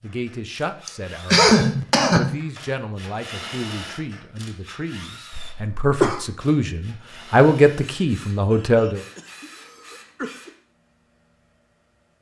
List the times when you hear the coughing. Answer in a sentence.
You can hear the coughing from 0.8 to 2.4 s, from 5.3 to 6.2 s and from 8.5 to 10.5 s.